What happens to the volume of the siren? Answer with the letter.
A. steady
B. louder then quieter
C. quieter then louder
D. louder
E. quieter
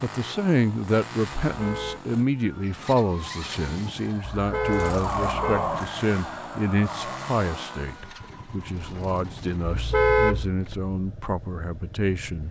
B.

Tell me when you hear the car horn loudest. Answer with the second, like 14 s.
10 s.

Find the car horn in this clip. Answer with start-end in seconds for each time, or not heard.
1.4-2.0, 4.3-5.7, 9.7-10.6.